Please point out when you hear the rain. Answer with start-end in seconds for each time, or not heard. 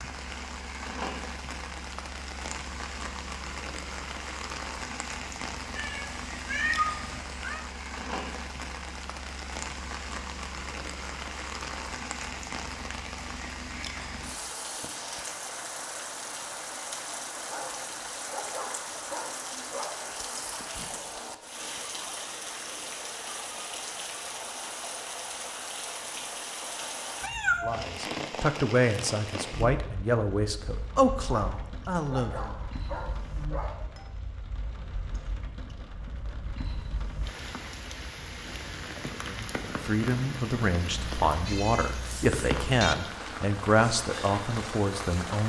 0.0-45.4.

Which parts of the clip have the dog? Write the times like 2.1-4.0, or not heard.
17.4-20.1, 31.4-34.1.